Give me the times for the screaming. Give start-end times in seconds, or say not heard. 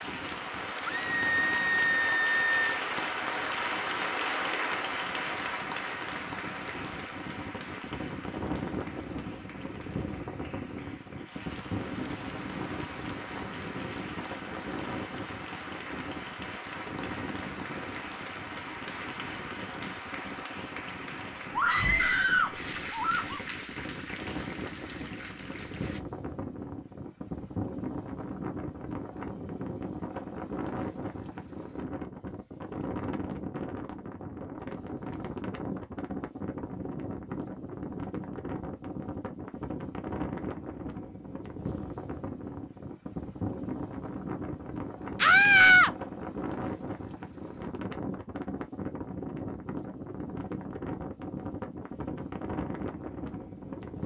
1.1-2.8, 21.6-23.4, 45.2-45.9.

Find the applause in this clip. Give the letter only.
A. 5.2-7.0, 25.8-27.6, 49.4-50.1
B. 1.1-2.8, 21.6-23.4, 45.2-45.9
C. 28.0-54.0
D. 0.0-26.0
D.